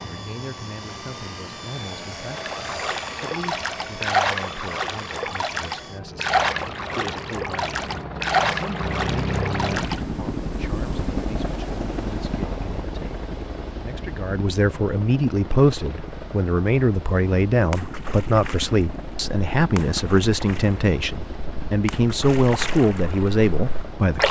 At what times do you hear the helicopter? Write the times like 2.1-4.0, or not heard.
0.0-24.2.